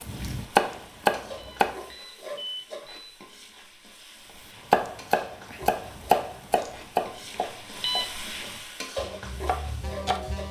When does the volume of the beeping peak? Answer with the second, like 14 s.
8 s.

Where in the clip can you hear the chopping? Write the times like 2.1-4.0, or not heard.
0.0-1.8, 4.7-10.4.